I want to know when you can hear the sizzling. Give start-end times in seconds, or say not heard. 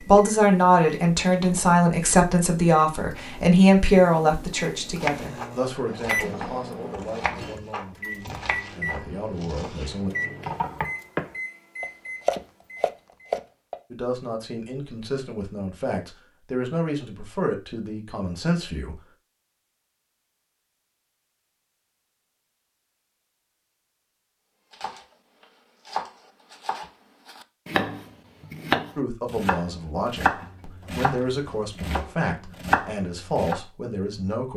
not heard.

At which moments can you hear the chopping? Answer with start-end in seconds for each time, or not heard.
5.0-13.8, 24.7-33.6.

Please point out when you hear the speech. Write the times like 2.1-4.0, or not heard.
0.1-10.1, 13.9-19.0, 28.9-34.5.